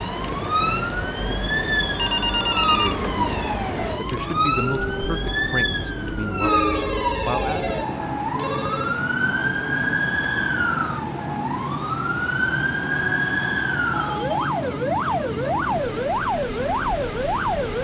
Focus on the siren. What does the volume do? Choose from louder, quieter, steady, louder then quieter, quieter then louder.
steady.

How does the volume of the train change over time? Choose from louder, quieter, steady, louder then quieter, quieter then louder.
steady.